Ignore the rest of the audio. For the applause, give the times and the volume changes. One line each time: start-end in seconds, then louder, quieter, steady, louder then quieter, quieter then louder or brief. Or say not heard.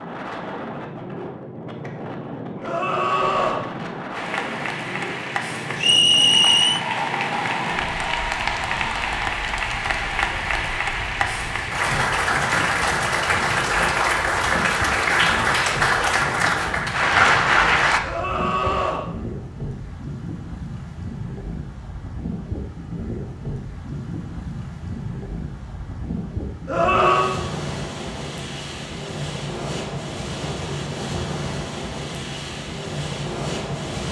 4.1-18.0 louder.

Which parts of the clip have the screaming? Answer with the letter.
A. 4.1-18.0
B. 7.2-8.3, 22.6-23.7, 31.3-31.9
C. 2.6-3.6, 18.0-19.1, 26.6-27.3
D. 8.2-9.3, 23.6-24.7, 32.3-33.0
C.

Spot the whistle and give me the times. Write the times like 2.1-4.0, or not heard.
5.8-6.8.